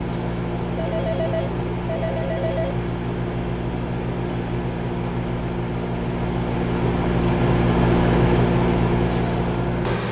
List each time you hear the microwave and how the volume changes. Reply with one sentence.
You can hear the microwave from 0.0 to 10.0 s, getting louder.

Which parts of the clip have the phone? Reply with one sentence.
You can hear the phone from 0.8 to 2.8 s.